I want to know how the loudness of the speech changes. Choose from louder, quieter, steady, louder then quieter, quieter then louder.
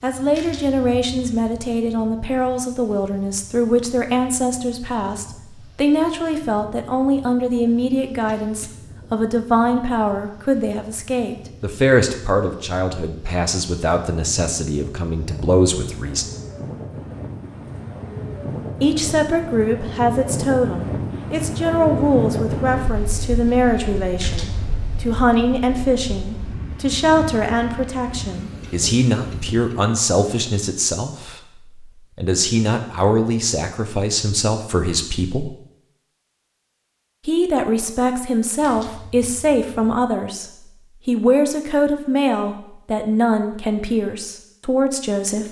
steady.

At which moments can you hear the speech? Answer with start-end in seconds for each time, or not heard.
0.0-16.4, 18.8-35.5, 37.2-45.4.